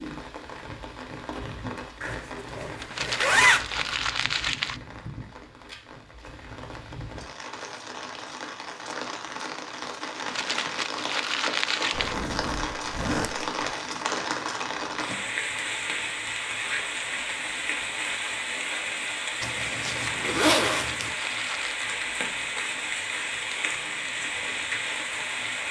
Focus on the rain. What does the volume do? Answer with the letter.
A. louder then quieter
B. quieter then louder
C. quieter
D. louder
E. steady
D.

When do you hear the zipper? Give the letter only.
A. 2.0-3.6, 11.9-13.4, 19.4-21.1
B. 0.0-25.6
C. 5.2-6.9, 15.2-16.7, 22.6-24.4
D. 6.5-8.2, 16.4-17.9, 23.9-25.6
A.